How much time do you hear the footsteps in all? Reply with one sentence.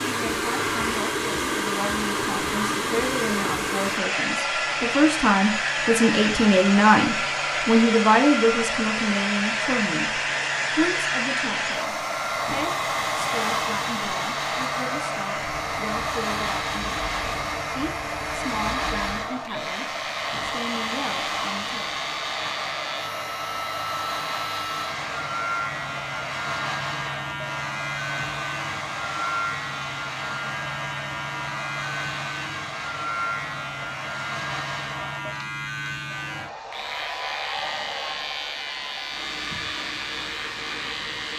You can't hear the footsteps here.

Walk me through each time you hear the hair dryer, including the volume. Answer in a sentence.
You can hear the hair dryer from 0.0 to 41.3 s, getting quieter.